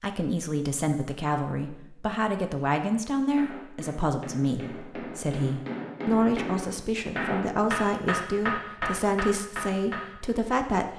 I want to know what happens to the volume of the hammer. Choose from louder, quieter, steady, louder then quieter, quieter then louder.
louder.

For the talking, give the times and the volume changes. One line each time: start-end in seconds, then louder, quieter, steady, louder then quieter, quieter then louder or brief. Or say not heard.
0.0-10.9 steady.